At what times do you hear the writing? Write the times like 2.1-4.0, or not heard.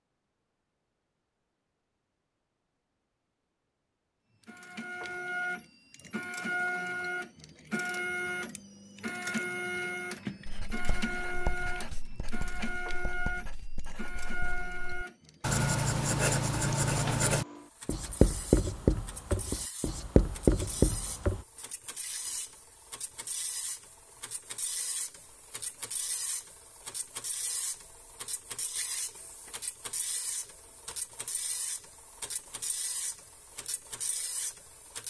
10.4-21.4.